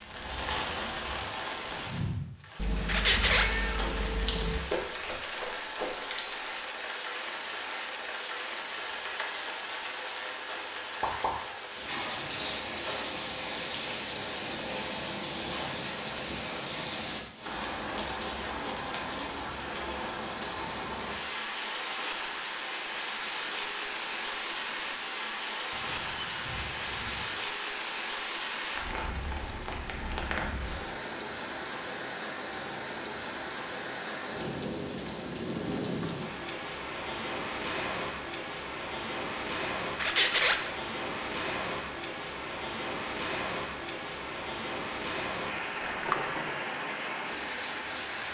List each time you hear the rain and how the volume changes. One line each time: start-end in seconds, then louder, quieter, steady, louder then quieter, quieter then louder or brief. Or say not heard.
0.0-48.2 steady.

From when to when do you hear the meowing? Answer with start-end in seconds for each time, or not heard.
2.5-4.6, 25.7-27.3, 45.8-46.5.